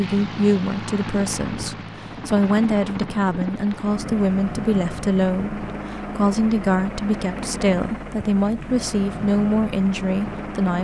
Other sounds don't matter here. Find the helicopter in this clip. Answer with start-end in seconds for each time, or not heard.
0.0-10.7.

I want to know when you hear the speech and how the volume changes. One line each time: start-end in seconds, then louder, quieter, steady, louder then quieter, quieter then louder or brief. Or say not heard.
0.0-10.7 steady.